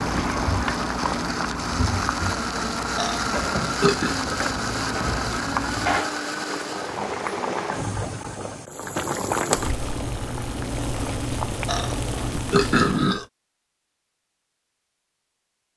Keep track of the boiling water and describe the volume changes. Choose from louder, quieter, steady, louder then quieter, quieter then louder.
steady.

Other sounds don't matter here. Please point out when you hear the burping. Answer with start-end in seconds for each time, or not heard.
3.0-4.2, 11.7-13.2.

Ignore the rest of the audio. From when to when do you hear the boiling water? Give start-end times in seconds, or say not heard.
0.0-13.2.